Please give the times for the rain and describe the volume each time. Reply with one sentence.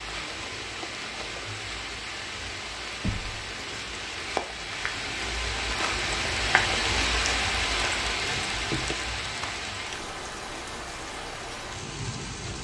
The rain can be heard from 0.0 to 12.5 s, getting louder then quieter.